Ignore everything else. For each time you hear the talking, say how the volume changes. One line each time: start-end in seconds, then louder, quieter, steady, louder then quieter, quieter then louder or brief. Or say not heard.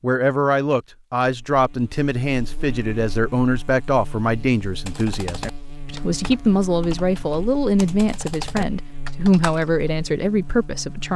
0.0-11.1 steady.